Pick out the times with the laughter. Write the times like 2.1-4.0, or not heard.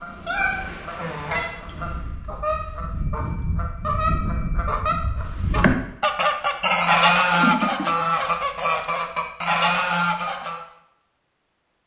6.8-7.8.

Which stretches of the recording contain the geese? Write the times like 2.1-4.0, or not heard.
0.0-10.7.